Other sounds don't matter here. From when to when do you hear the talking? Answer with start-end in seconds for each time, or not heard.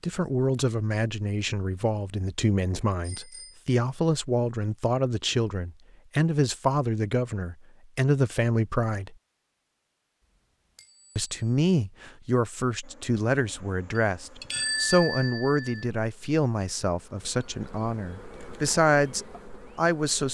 0.0-9.2, 11.2-20.2.